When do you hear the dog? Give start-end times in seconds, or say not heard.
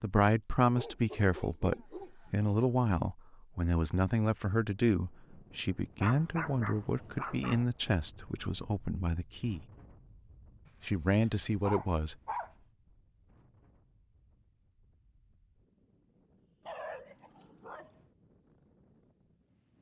0.8-2.4, 6.0-7.7, 10.7-12.6, 16.6-18.0.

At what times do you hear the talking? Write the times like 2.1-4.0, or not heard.
0.0-9.7, 10.8-12.2.